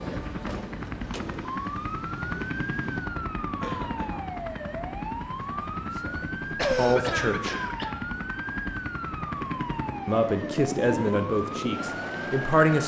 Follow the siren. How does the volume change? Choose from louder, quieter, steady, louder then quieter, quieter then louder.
steady.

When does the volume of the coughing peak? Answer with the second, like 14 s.
7 s.